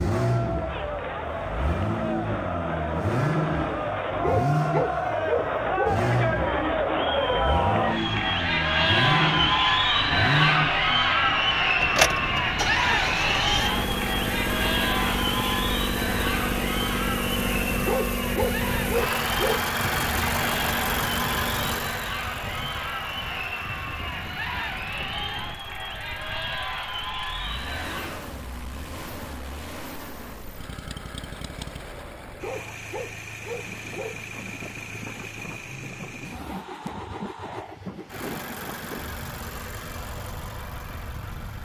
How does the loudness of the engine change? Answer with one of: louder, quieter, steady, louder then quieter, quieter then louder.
quieter.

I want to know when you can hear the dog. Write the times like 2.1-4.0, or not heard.
4.2-6.0, 17.8-19.6, 32.4-34.2.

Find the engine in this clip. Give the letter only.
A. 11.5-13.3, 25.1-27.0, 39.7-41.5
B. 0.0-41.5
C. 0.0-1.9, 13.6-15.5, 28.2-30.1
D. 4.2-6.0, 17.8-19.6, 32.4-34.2
B.